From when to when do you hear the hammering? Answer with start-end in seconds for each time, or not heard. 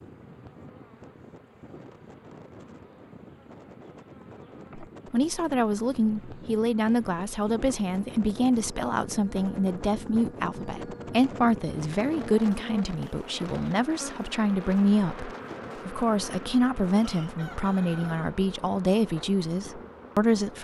not heard.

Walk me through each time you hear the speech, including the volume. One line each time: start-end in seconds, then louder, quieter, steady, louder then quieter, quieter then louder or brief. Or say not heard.
4.8-20.5 steady.